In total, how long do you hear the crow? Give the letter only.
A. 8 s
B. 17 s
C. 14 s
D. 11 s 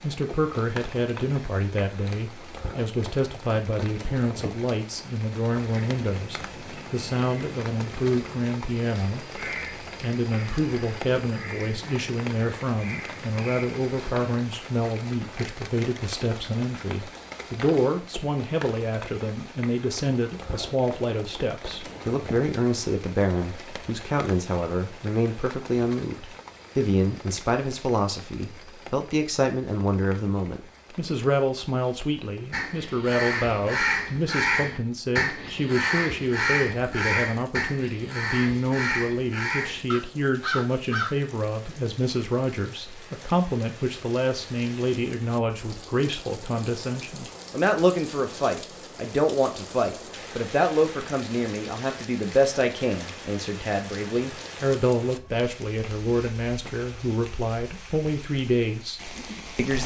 B.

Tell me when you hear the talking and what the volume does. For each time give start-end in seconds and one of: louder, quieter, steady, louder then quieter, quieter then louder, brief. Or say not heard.
0.0-59.8 steady.